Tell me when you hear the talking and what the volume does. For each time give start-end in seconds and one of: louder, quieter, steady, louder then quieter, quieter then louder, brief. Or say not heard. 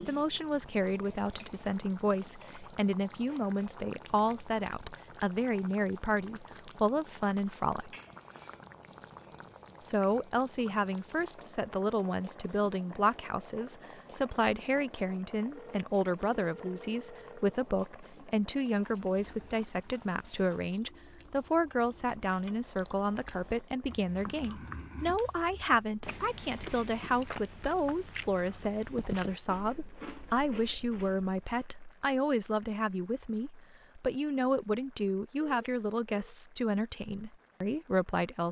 0.1-8.0 steady
9.8-38.4 steady.